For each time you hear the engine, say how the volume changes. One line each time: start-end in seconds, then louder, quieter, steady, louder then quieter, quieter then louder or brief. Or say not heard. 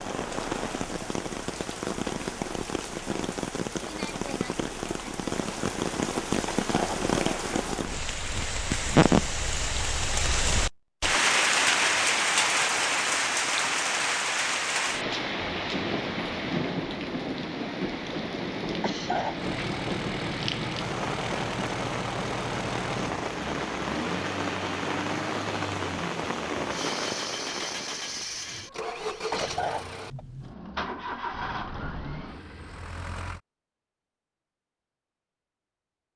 19.4-33.4 steady.